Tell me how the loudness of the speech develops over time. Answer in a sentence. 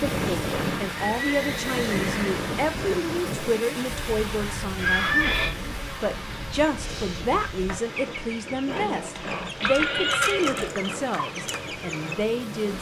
The volume of the speech stays about the same.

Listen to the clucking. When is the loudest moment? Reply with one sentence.
The loudest moment of the clucking is at 10 seconds.